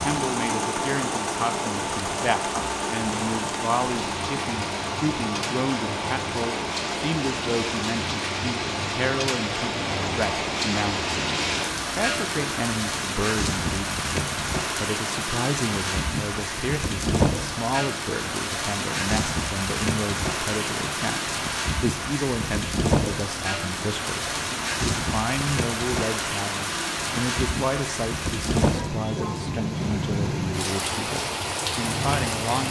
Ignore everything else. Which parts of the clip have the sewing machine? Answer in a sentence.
The sewing machine can be heard from 0.0 to 11.7 s.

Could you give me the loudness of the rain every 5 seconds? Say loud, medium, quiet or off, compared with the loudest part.
medium, loud, loud, loud, loud, loud, loud.